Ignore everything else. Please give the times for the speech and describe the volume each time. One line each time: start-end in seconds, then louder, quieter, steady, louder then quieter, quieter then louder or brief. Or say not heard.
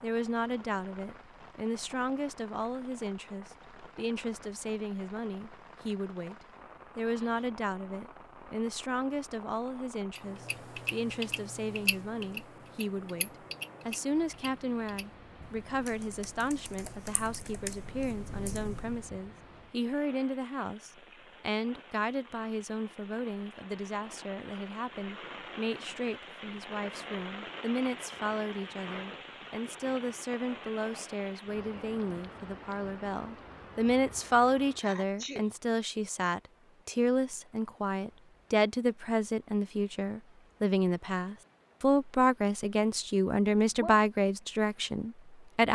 0.0-6.3 steady
7.0-45.6 louder.